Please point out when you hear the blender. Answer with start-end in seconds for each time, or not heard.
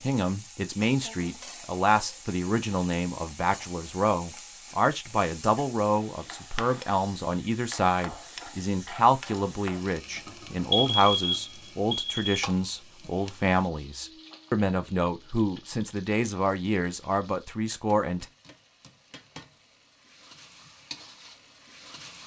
not heard.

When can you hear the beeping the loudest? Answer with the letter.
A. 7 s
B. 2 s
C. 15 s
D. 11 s
D.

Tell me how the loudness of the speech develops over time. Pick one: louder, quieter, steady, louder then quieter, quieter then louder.
steady.